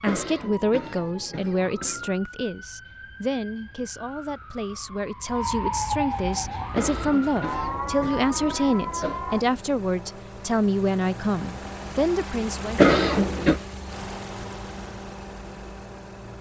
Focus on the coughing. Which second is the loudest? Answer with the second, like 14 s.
13 s.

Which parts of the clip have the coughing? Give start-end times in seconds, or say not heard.
0.1-2.1, 6.7-9.2, 12.8-13.6.